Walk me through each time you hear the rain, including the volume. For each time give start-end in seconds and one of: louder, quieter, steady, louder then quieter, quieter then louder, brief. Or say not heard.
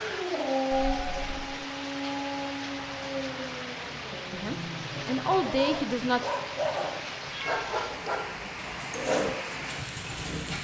0.0-10.5 steady.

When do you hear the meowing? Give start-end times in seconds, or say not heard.
0.7-1.4, 7.3-7.8.